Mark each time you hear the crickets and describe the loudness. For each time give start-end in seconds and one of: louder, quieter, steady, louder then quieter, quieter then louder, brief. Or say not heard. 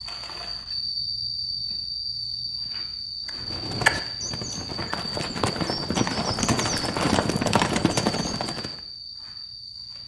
0.0-10.0 quieter.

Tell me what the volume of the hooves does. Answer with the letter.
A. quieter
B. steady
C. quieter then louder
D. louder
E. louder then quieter
C.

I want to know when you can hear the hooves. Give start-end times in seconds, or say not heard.
3.2-8.8.